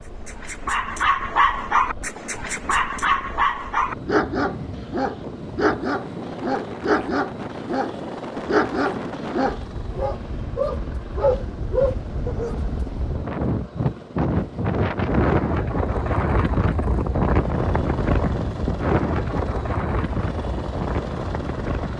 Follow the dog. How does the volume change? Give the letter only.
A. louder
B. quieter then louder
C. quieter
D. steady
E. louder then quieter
D.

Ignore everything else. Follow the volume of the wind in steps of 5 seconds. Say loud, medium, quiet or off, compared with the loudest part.
quiet, medium, medium, loud, medium.